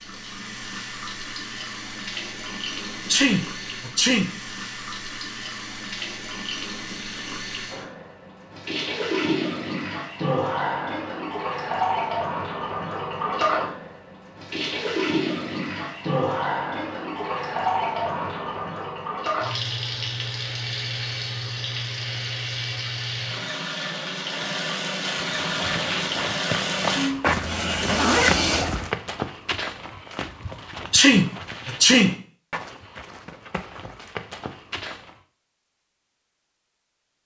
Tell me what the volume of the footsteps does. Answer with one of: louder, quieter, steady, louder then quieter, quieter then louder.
quieter.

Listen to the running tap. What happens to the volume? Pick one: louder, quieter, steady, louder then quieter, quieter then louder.
louder.